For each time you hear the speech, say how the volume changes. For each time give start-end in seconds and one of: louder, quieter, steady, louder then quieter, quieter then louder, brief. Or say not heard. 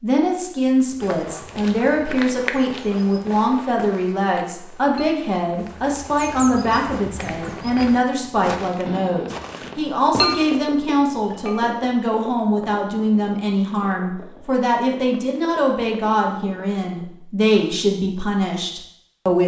0.0-19.4 steady.